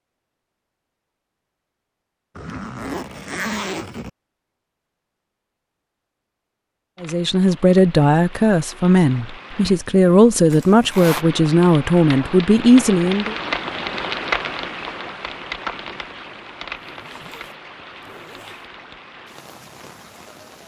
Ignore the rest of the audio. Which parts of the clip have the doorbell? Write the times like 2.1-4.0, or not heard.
not heard.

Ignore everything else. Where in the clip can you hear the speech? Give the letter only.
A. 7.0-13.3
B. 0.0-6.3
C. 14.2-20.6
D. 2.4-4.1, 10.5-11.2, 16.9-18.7
A.